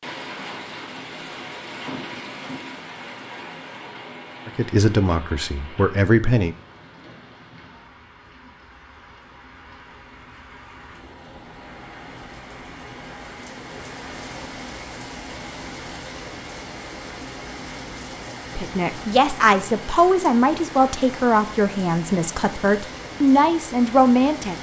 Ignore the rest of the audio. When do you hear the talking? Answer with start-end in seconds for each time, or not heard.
4.5-6.5, 18.6-24.5.